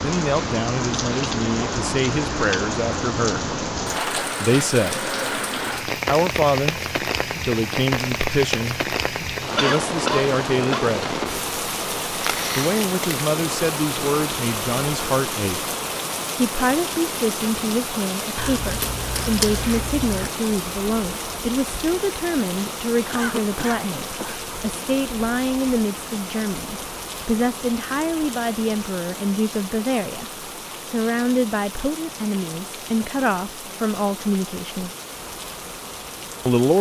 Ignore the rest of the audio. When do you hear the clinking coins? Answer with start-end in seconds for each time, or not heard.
18.4-20.3.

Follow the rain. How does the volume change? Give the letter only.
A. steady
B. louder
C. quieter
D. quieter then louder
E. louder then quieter
C.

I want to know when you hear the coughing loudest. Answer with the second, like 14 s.
10 s.